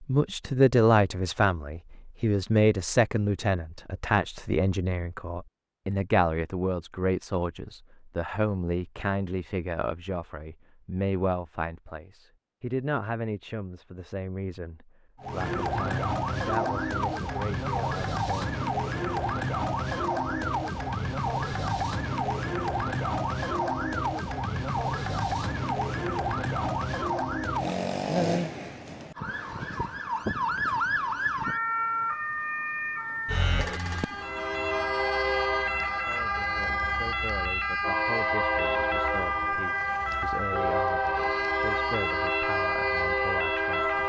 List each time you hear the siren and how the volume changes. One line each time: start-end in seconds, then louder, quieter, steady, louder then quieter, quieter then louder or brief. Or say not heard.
15.2-44.0 steady.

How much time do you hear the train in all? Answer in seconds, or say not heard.
10 s.